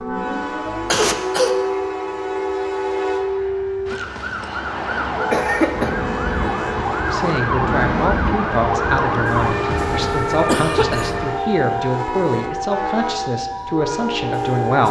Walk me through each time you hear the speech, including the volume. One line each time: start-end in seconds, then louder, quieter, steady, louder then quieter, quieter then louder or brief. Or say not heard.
7.1-14.8 steady.